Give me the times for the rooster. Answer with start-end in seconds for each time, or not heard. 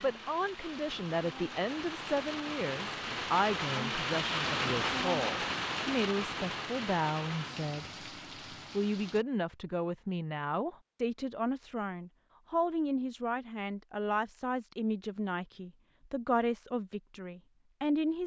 not heard.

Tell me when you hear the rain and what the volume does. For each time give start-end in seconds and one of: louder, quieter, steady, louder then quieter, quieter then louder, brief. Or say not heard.
0.0-9.2 louder then quieter.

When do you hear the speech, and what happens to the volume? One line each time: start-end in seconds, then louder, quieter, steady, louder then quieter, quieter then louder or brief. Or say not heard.
0.0-7.9 steady
8.7-18.2 steady.